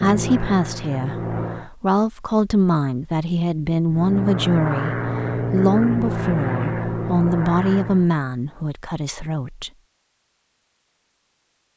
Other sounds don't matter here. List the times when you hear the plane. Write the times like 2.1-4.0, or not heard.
0.0-1.7, 3.9-8.1.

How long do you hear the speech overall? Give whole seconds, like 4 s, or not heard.
10 s.